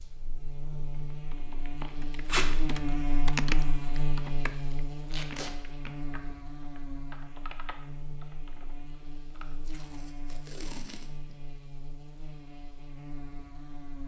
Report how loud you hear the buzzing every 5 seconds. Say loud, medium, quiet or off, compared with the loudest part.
loud, medium, medium.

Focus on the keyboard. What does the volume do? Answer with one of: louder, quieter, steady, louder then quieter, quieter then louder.
louder then quieter.